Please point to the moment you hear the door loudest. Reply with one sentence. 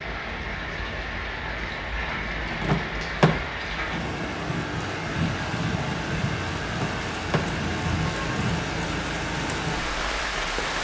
The loudest moment of the door is at 3 seconds.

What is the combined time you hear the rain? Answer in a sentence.
You can hear the rain for 11 seconds altogether.